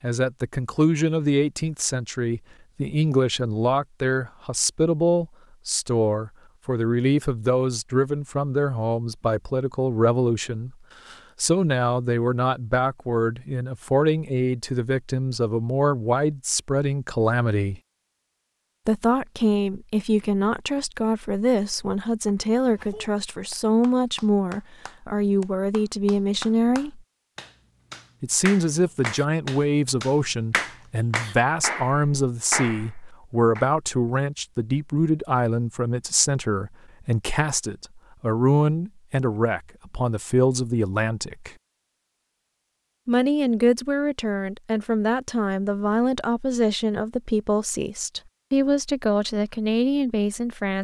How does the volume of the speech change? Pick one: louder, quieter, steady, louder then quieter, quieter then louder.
steady.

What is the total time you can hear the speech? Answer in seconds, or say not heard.
47 s.